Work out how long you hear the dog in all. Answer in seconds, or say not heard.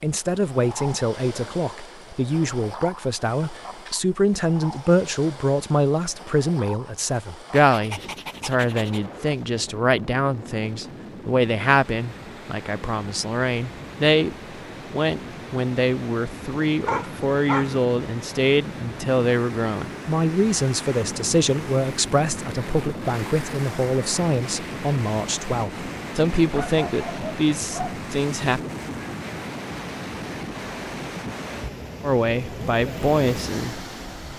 4 s.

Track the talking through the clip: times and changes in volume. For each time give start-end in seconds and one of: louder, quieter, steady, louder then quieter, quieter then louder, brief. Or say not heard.
0.0-28.6 steady
32.0-33.9 brief.